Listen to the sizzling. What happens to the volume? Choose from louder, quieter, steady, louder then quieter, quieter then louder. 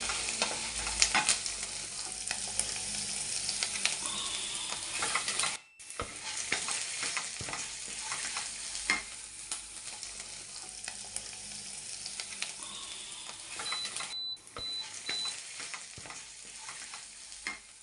quieter.